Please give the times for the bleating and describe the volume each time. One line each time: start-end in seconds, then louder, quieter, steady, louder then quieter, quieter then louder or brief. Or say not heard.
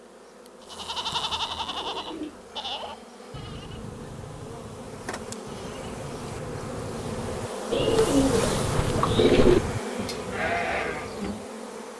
0.6-11.4 quieter then louder.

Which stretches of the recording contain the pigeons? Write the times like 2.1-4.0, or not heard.
0.9-2.4, 7.7-9.6.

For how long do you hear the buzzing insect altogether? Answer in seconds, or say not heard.
12 s.